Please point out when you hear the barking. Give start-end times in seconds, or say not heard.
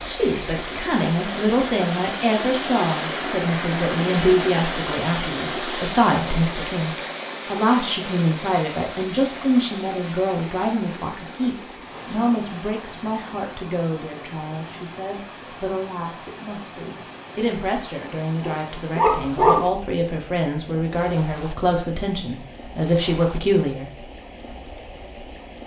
18.4-19.6.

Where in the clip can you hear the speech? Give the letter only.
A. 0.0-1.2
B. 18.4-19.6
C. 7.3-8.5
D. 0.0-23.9
D.